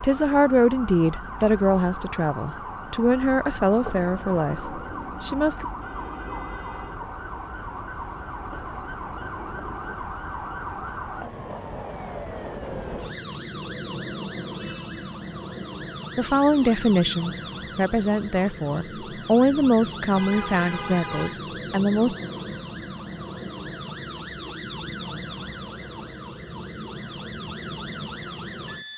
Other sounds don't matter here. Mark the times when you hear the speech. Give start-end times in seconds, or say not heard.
0.0-5.7, 16.1-22.1.